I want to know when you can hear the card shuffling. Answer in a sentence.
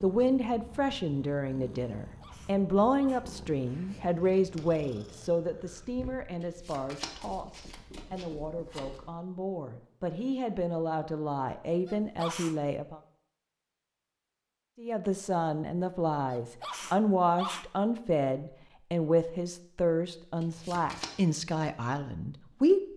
The card shuffling can be heard from 6.4 to 9.0 s and from 20.4 to 21.1 s.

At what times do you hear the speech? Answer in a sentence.
You can hear the speech from 0.0 to 13.0 s and from 14.8 to 22.9 s.